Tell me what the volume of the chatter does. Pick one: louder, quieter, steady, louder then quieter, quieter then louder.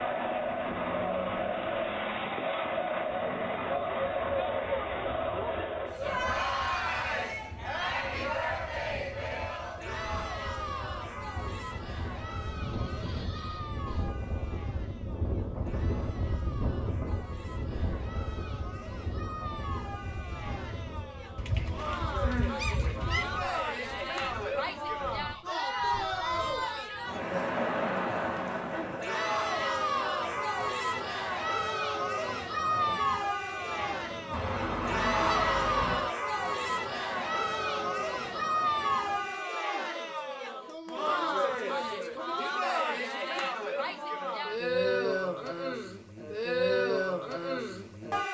quieter then louder.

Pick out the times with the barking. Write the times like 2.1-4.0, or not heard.
not heard.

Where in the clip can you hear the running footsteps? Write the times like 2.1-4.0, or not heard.
not heard.